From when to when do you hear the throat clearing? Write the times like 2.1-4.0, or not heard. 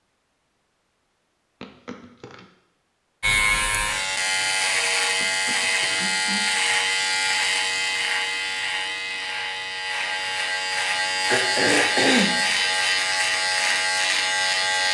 1.6-2.5, 5.2-6.5, 11.2-12.3.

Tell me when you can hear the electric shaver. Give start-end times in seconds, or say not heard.
3.2-14.8.